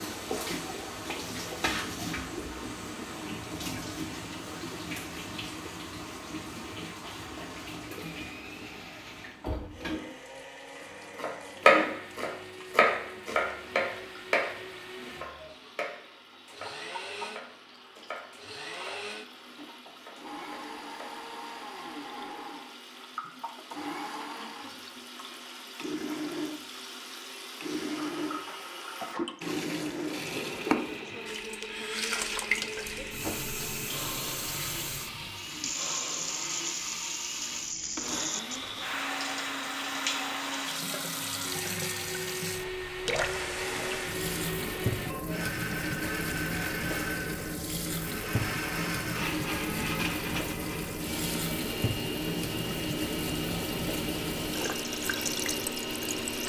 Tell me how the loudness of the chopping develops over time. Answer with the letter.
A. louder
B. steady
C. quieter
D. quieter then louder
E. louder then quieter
C.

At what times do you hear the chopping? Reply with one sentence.
You can hear the chopping from 11.2 to 21.5 s.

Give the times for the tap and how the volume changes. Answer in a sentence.
The tap can be heard from 0.0 to 56.4 s, getting quieter then louder.